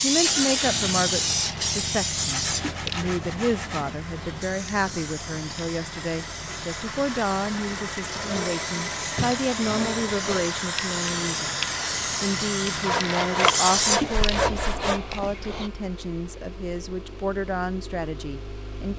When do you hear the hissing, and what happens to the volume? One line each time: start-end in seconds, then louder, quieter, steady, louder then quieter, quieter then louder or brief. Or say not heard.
0.0-15.7 quieter then louder.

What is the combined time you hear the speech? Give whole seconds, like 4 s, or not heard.
18 s.